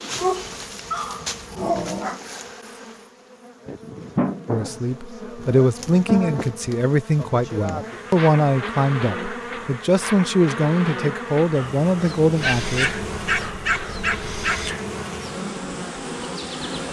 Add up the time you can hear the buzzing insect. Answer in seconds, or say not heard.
17 s.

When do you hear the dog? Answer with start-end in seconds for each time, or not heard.
0.1-2.2, 12.4-14.8.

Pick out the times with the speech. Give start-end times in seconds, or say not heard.
4.5-12.9.